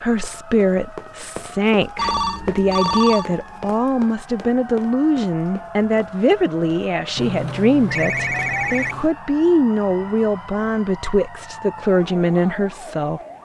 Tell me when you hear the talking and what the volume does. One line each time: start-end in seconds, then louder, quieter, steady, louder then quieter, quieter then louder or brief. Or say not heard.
0.0-13.2 steady.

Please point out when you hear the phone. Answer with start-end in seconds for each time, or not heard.
1.9-3.6, 7.2-9.1.